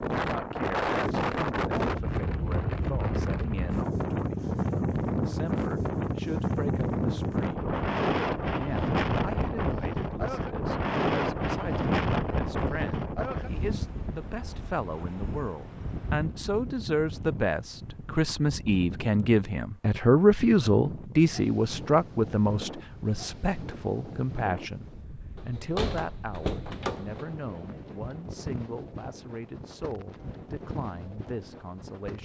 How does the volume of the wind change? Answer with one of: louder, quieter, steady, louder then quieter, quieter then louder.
quieter.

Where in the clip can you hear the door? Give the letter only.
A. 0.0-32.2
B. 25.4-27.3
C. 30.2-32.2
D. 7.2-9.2
B.